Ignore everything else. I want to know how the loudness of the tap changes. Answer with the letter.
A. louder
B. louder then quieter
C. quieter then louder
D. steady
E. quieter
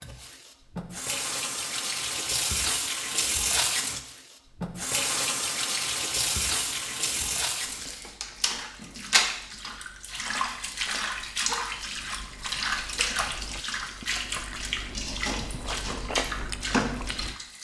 D.